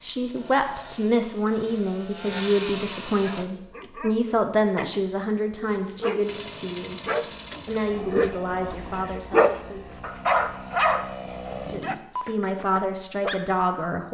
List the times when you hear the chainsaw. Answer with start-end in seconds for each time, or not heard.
0.0-3.5, 6.2-12.0.